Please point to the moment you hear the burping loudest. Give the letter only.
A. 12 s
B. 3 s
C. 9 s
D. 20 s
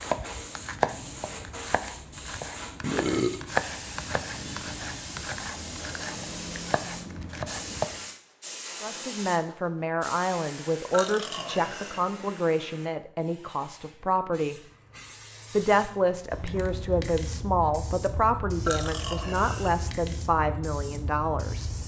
B.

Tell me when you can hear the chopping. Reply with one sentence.
The chopping can be heard from 0.0 to 8.0 s.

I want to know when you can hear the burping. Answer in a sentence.
You can hear the burping from 2.8 to 3.4 s, from 10.9 to 12.1 s and from 18.6 to 19.8 s.